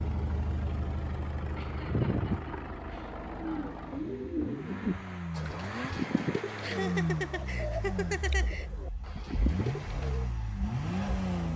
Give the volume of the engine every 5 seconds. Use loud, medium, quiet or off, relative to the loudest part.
medium, loud, loud.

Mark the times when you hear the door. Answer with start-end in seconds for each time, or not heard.
not heard.